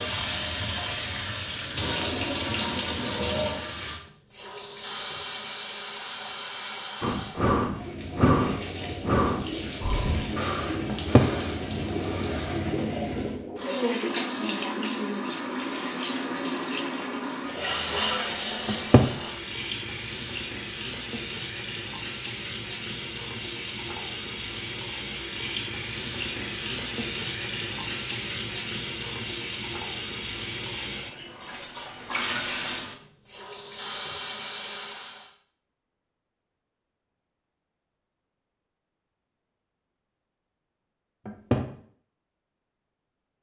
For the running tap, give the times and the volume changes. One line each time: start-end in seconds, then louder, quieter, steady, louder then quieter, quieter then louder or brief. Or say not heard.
0.0-35.3 steady.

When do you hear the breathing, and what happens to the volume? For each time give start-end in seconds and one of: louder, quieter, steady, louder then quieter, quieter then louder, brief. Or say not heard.
7.0-12.6 quieter.